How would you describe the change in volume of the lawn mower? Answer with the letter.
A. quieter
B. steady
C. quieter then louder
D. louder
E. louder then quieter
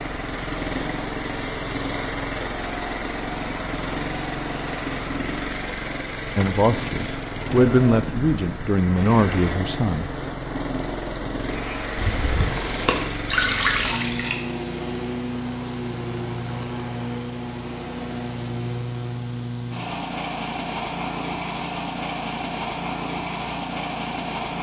B.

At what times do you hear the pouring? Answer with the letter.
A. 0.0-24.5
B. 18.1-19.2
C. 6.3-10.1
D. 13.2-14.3
D.